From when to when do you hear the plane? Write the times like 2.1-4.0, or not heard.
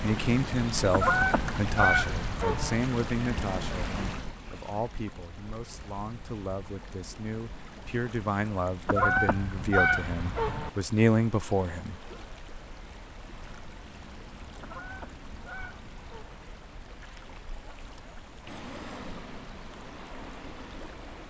18.4-21.2.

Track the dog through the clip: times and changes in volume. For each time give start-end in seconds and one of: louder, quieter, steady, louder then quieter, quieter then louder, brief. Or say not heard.
not heard.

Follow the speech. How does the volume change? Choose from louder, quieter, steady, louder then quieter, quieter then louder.
quieter then louder.